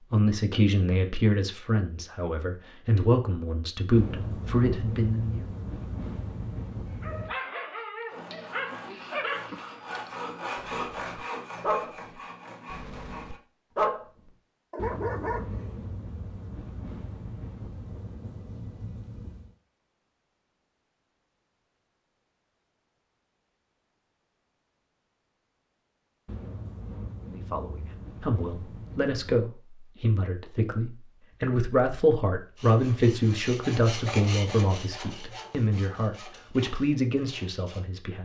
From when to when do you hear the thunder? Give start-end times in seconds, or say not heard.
3.9-7.3, 14.8-19.5, 26.2-29.2.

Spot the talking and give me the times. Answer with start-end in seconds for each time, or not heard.
0.1-5.5, 27.3-38.2.